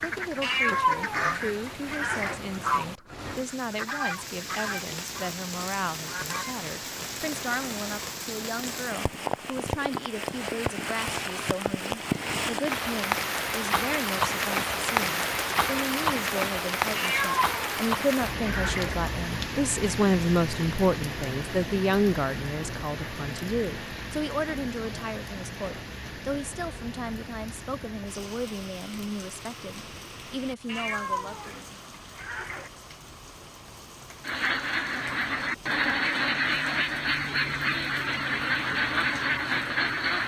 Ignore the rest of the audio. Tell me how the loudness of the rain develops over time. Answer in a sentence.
The volume of the rain goes up, then down.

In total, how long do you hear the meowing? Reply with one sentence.
The meowing can be heard for 6 seconds in total.